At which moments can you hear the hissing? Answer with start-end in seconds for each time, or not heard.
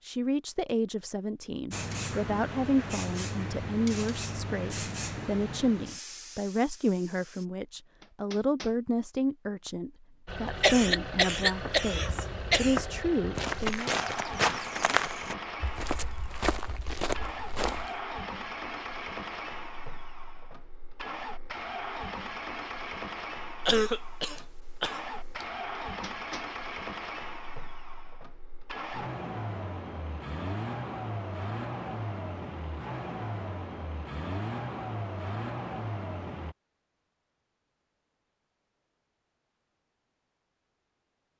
1.7-7.5.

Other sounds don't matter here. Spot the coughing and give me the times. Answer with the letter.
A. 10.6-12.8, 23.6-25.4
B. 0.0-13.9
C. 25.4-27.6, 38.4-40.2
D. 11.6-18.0
A.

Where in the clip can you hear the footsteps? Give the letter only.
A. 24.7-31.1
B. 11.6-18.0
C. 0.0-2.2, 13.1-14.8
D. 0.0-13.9
B.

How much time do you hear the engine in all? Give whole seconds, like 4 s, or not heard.
26 s.